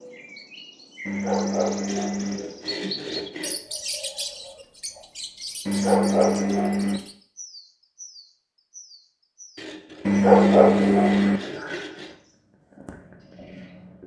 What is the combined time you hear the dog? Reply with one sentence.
The dog can be heard for 4 seconds in total.